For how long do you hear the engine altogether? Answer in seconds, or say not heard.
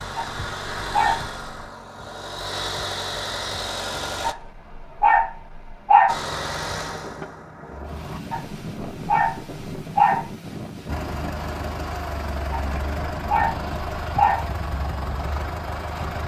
12 s.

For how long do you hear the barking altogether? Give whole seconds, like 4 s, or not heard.
7 s.